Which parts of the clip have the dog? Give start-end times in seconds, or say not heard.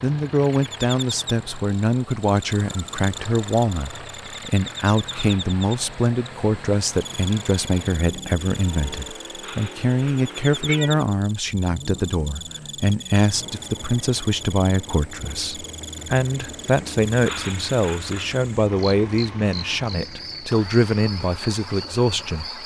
not heard.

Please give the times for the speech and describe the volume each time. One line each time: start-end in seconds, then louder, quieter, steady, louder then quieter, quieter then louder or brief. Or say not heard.
0.0-22.4 steady.